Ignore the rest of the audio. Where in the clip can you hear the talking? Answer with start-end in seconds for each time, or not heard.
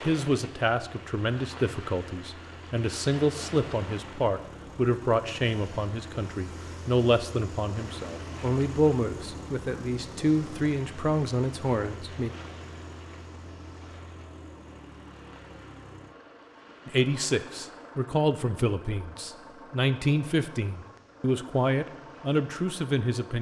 0.0-12.3, 16.9-23.3.